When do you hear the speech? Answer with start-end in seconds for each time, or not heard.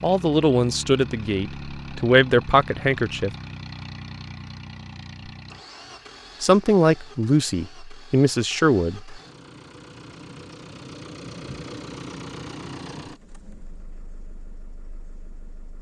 0.0-3.3, 6.4-9.2.